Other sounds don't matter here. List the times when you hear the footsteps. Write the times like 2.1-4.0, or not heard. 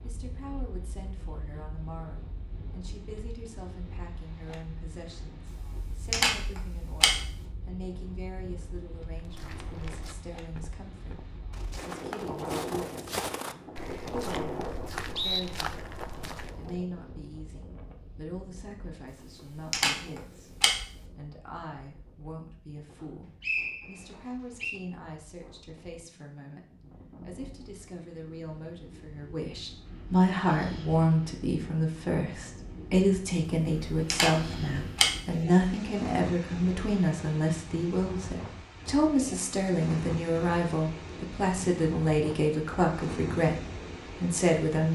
9.1-16.9.